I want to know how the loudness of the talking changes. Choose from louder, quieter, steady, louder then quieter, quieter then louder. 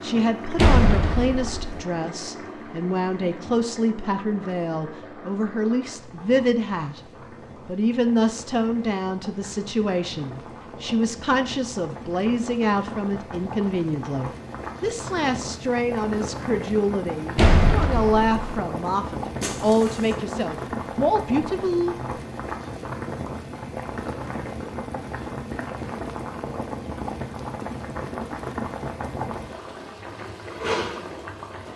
steady.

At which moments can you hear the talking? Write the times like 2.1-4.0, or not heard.
0.0-7.0, 7.7-21.9.